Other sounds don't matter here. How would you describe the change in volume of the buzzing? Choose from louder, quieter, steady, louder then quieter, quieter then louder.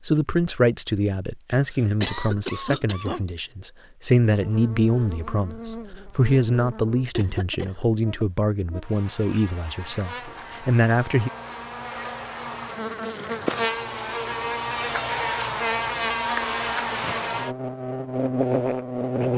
louder.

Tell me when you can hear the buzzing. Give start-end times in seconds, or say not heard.
4.2-19.3.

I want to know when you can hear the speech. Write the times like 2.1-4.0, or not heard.
0.0-11.3.